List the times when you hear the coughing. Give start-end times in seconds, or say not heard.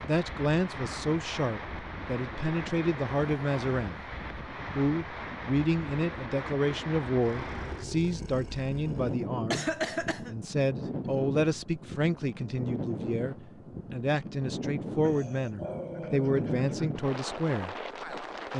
9.5-10.3.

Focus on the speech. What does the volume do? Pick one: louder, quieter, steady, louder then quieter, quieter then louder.
steady.